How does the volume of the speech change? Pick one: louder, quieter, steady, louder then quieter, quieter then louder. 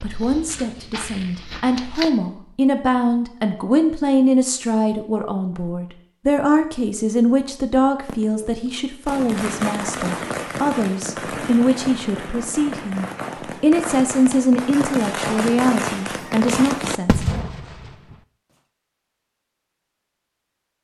steady.